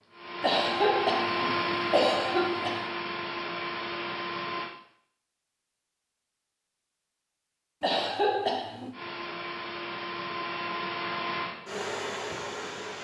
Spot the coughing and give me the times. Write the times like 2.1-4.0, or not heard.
0.4-2.9, 7.8-8.9.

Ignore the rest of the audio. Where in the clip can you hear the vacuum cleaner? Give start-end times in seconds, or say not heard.
0.0-4.7, 8.9-13.0.